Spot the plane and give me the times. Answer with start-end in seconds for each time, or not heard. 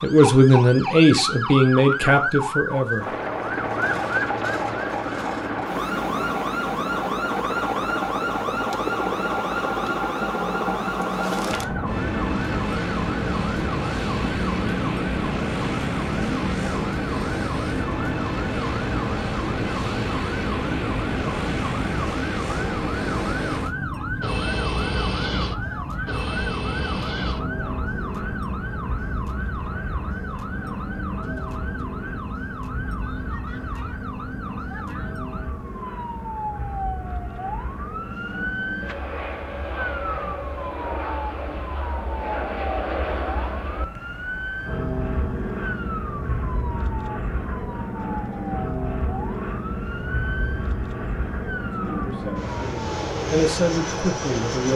3.0-54.7.